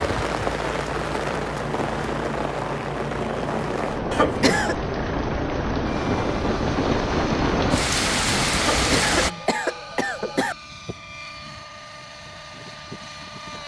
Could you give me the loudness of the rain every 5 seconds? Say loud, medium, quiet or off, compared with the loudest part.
medium, loud, off.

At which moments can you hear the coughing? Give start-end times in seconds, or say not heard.
4.1-4.8, 8.6-10.6.